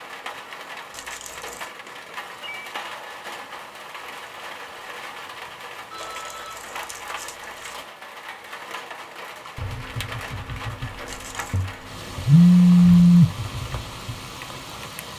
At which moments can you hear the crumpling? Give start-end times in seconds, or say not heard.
0.9-1.7, 6.0-7.8, 11.1-11.7.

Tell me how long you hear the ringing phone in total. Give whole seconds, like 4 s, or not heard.
3 s.